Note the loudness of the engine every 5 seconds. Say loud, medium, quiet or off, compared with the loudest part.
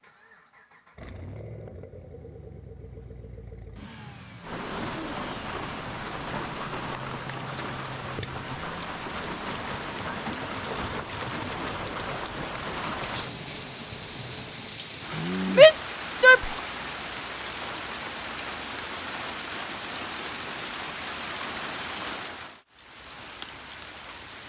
loud, loud, loud, off, off.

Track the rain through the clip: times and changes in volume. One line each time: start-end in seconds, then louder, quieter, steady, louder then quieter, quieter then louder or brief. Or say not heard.
4.4-24.4 steady.